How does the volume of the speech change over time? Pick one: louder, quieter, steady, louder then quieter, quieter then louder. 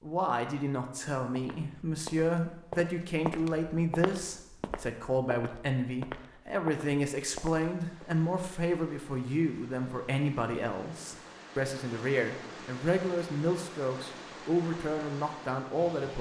steady.